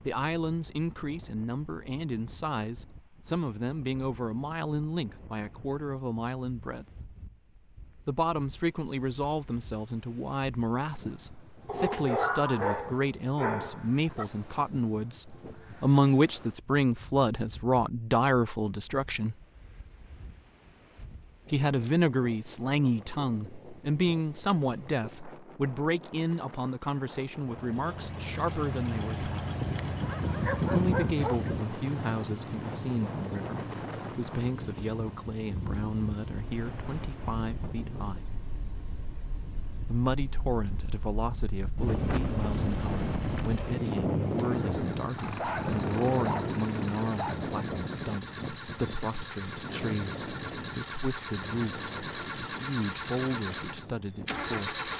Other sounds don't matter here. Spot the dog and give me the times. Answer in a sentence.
The dog can be heard from 11.7 to 14.2 s, from 29.6 to 31.6 s and from 45.1 to 47.4 s.